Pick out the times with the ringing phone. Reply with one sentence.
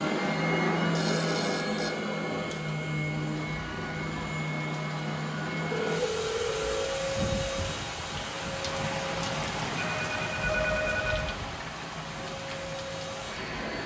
You can hear the ringing phone from 0.9 to 1.9 s, from 5.7 to 6.8 s and from 9.8 to 11.3 s.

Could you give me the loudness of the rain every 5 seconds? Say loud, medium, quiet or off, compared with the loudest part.
medium, loud, loud.